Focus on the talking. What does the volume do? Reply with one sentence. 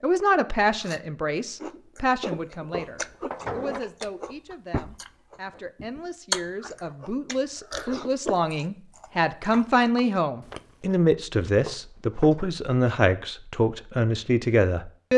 The volume of the talking goes down, then up.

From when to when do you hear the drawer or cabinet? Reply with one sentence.
The drawer or cabinet can be heard from 2.7 to 3.9 s and from 11.7 to 12.4 s.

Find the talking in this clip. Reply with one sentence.
You can hear the talking from 0.0 to 15.1 s.